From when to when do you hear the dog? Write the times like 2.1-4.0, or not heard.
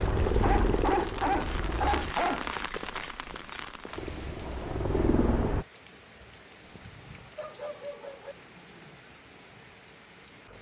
0.3-2.6, 6.6-8.3.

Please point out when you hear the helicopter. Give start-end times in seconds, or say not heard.
0.0-2.1, 4.0-5.7.